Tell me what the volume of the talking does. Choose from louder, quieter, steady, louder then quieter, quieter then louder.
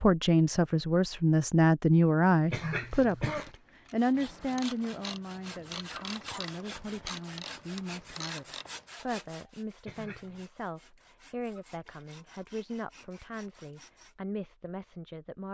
quieter.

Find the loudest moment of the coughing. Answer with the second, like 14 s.
3 s.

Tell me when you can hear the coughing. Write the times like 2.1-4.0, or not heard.
2.5-3.5, 9.8-10.4.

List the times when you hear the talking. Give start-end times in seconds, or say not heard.
0.0-15.4.